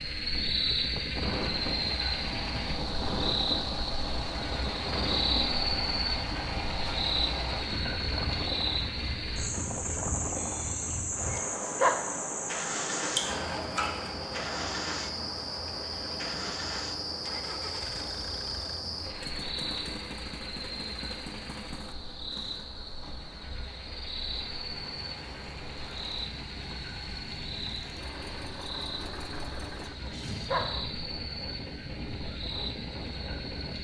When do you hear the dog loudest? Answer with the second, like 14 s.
12 s.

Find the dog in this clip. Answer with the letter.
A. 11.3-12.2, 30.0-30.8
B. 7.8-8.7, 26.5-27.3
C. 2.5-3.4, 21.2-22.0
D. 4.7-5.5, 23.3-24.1
A.